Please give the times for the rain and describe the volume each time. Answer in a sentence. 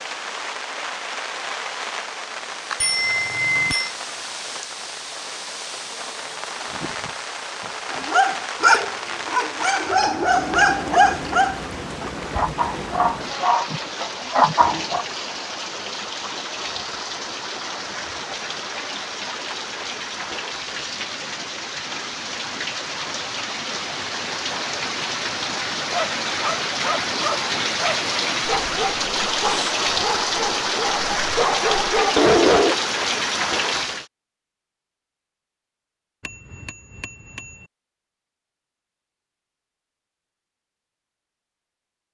You can hear the rain from 0.0 to 34.0 s, getting louder.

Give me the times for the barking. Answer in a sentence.
You can hear the barking from 7.9 to 15.1 s and from 25.9 to 32.8 s.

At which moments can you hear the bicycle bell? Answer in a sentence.
You can hear the bicycle bell from 2.8 to 3.9 s and from 36.2 to 37.6 s.